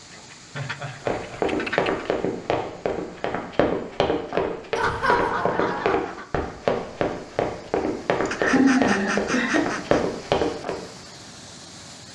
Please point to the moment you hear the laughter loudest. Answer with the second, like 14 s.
9 s.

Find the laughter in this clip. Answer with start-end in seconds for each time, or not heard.
0.5-1.6, 4.8-6.0, 8.2-9.8.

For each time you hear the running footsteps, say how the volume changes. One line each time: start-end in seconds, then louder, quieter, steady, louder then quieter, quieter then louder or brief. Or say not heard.
1.0-10.8 steady.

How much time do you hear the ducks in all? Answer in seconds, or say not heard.
5 s.